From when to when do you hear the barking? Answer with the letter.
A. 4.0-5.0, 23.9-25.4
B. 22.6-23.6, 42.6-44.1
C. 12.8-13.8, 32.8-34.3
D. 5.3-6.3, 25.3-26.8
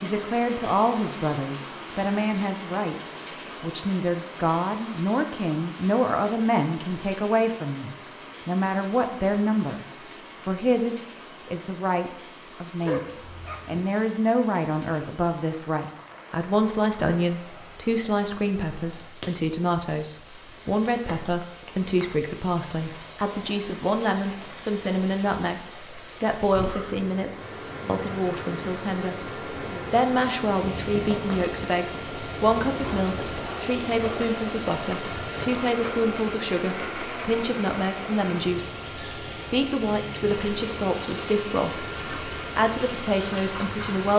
C.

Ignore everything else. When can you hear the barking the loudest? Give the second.
13 s.